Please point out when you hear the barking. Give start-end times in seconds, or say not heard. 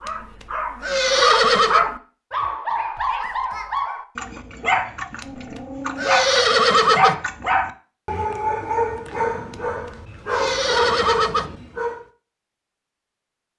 0.0-12.1.